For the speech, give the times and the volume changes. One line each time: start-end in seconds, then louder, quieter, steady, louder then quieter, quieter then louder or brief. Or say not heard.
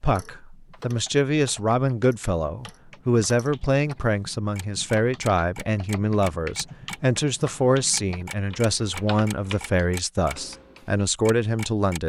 0.0-12.0 steady.